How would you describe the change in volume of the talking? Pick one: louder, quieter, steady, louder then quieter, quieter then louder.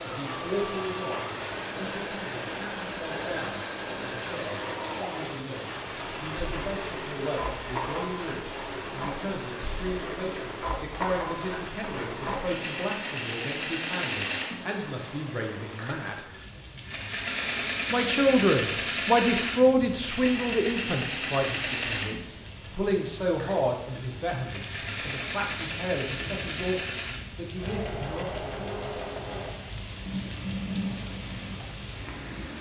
louder then quieter.